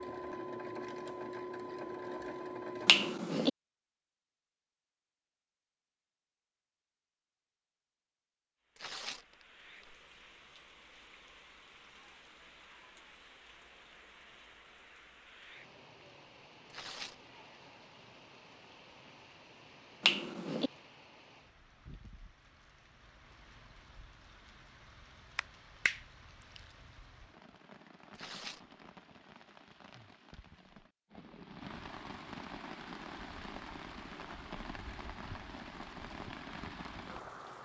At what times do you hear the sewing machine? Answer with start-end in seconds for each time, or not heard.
0.0-3.1.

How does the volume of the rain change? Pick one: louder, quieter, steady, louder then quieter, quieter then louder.
louder.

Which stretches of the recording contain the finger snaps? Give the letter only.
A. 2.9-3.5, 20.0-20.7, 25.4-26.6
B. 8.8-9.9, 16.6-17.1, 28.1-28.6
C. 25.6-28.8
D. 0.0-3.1
A.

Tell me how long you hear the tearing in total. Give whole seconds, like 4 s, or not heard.
2 s.